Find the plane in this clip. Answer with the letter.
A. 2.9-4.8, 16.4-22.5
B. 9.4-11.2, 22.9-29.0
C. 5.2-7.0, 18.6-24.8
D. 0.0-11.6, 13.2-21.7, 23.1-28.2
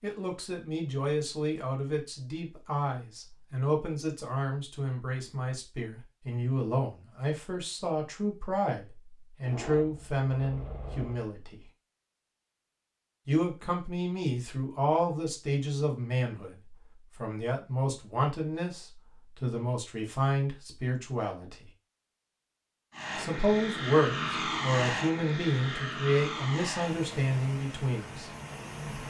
B.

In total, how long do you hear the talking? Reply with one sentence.
You can hear the talking for 25 seconds altogether.